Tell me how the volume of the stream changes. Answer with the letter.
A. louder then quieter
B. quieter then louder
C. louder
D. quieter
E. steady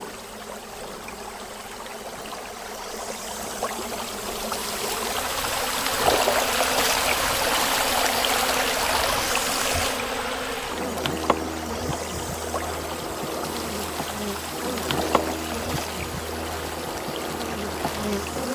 A.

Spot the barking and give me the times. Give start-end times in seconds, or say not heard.
not heard.